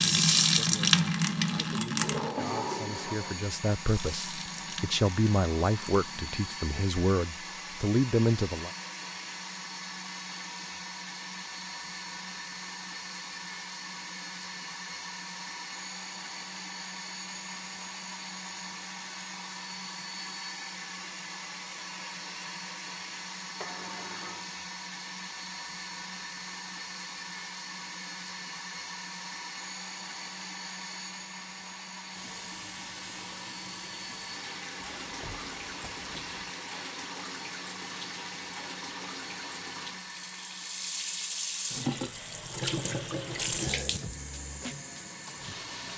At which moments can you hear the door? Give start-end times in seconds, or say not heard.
2.0-3.5, 23.6-24.4, 35.0-36.4.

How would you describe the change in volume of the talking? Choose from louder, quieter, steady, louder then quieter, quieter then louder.
louder.